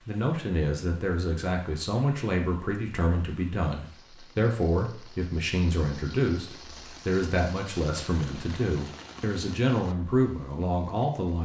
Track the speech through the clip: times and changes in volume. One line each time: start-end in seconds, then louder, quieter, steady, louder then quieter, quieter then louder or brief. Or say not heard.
0.1-11.4 steady.